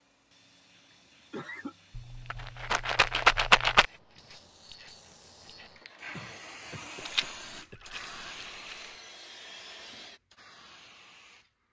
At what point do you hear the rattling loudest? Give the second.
3 s.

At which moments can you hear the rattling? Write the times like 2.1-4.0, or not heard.
1.9-3.9, 7.0-8.8.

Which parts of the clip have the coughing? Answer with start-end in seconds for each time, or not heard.
1.3-1.8, 6.1-7.8.